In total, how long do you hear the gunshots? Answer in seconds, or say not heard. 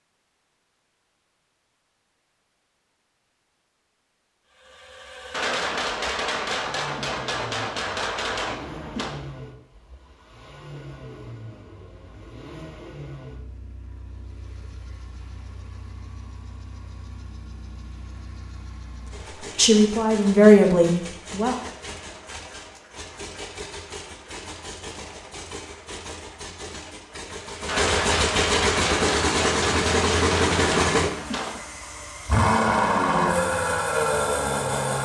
8 s.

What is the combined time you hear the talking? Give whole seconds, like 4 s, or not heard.
2 s.